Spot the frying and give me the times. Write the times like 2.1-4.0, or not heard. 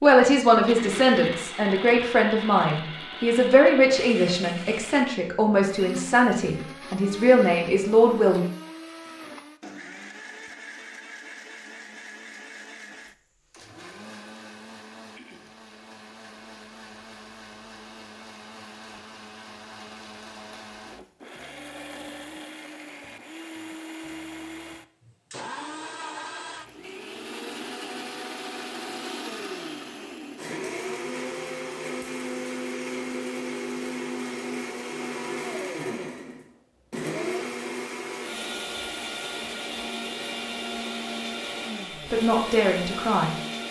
not heard.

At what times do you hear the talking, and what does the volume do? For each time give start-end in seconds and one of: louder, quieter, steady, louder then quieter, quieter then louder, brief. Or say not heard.
0.0-8.4 steady
42.1-43.4 brief.